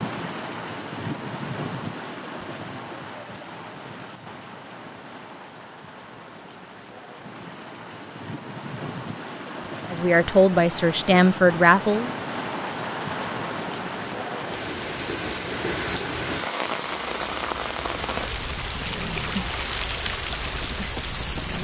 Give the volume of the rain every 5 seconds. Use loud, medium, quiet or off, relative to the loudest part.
medium, medium, loud, loud, loud.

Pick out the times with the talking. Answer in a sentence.
You can hear the talking from 9.9 to 12.1 s.